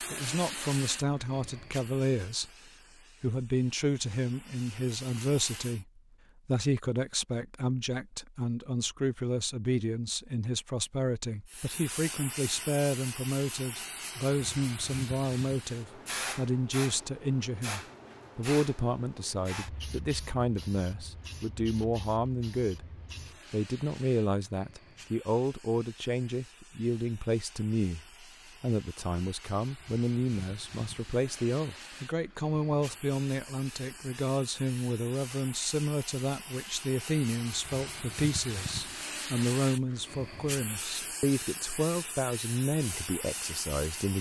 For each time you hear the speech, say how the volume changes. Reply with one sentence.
The speech can be heard briefly from 0.1 to 2.5 s; from 3.2 to 22.9 s, at a steady volume; and from 23.5 to 44.1 s, at a steady volume.